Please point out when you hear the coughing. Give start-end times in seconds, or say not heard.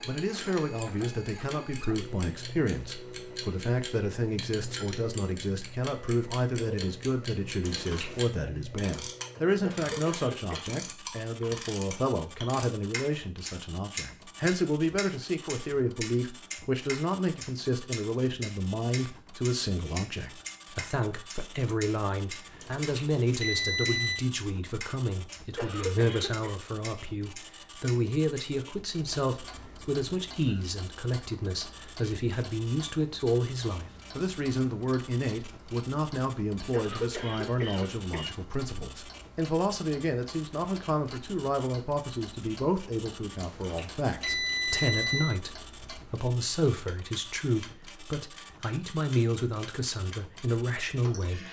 9.6-10.6, 25.6-26.6, 36.7-38.2.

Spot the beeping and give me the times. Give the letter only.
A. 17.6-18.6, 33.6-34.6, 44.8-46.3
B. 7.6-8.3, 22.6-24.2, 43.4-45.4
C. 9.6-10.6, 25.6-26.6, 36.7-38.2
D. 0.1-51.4
B.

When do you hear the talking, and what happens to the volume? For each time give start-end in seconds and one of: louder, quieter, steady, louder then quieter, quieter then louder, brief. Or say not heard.
0.1-51.4 steady.